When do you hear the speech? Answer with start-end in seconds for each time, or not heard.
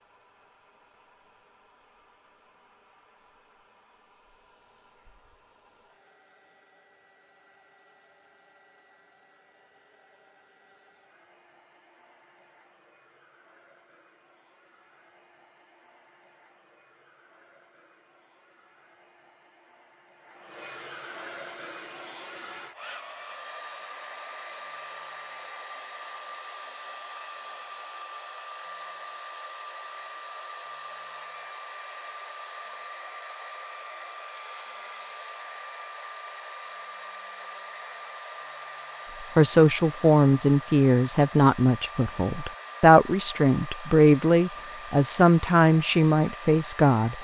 39.4-47.1.